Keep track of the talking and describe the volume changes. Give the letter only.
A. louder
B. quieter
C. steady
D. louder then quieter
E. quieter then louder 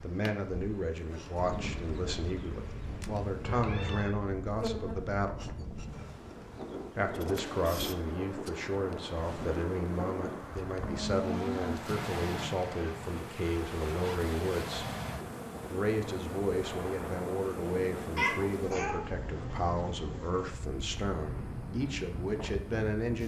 C.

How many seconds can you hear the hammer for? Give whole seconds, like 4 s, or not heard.
not heard.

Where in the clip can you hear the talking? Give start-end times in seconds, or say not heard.
0.0-5.4, 7.0-14.9, 15.7-23.2.